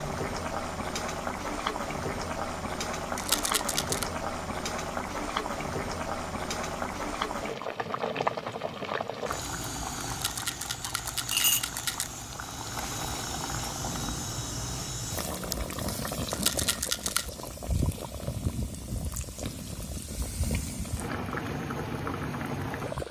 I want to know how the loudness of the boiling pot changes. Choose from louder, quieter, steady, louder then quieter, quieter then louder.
steady.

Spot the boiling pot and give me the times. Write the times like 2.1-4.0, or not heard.
0.0-23.0.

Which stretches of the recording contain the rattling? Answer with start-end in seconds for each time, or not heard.
3.1-4.0, 10.1-12.1, 16.3-17.3.